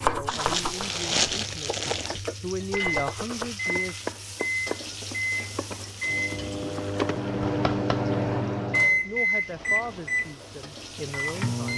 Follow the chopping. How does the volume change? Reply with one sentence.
The loudness of the chopping goes down, then up.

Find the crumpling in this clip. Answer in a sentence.
You can hear the crumpling from 0.2 to 2.2 s and from 6.3 to 7.2 s.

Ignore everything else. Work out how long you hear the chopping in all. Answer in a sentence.
The chopping can be heard for 8 seconds in total.